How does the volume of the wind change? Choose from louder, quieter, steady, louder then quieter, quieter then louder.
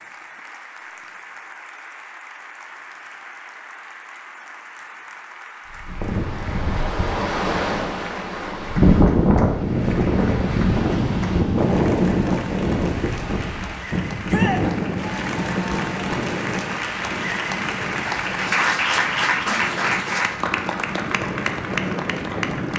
quieter.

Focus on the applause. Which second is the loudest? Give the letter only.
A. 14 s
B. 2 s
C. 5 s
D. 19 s
D.